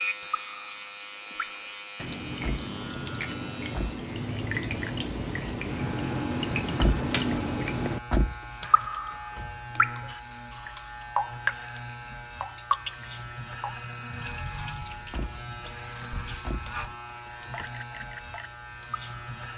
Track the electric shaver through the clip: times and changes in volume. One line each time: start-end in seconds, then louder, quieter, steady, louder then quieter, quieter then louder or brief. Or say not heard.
0.0-19.5 steady.